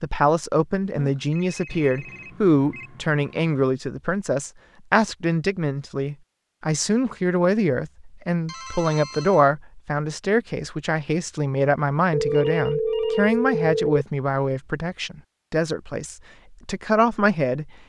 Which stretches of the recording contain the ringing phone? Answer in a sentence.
The ringing phone can be heard from 0.9 to 2.9 s, from 8.4 to 9.4 s and from 12.1 to 14.1 s.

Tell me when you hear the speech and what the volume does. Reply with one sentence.
You can hear the speech from 0.0 to 17.7 s, at a steady volume.